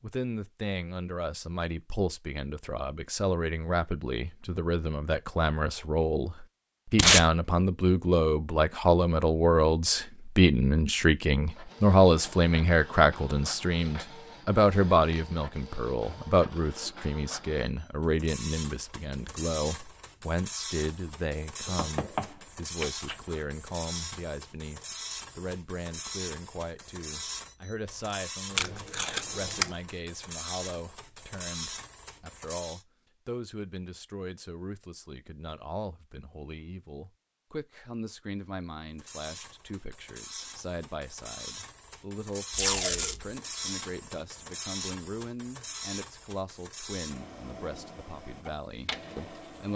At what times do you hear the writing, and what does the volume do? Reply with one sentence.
The writing can't be heard in this clip.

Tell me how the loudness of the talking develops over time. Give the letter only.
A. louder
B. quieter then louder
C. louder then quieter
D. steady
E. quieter
E.